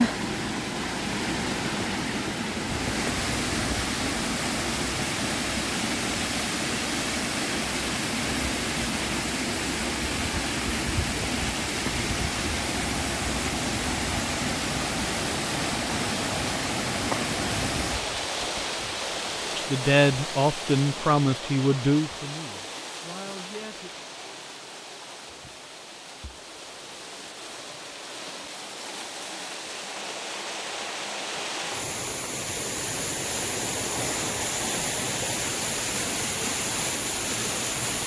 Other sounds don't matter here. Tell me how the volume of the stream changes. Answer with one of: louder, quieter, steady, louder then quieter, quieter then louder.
quieter then louder.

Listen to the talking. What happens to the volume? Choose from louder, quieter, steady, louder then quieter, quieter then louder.
quieter.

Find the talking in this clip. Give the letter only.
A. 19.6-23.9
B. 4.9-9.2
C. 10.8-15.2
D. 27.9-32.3
A.